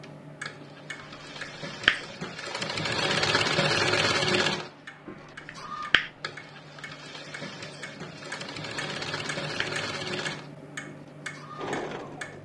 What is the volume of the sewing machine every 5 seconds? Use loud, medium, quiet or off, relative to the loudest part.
loud, medium, medium.